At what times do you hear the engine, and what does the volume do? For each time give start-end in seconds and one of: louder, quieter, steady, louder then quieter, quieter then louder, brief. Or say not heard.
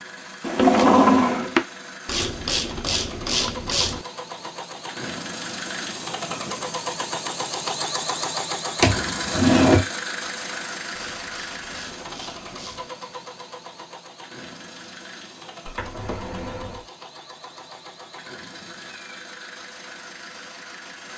0.0-21.1 louder then quieter.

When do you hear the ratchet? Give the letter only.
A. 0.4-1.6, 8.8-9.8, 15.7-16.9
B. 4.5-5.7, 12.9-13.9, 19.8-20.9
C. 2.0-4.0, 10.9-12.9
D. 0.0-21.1
C.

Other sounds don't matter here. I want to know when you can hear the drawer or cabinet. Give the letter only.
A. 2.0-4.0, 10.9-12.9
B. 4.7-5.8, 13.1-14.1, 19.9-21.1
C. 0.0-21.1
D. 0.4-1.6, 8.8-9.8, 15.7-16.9
D.